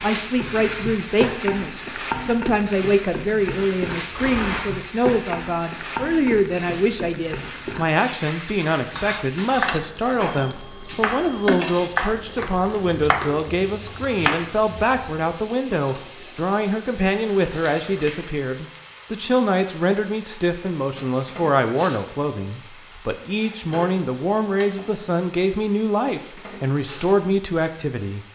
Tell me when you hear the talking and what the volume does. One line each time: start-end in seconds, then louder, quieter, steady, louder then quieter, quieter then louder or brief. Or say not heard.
0.0-28.2 steady.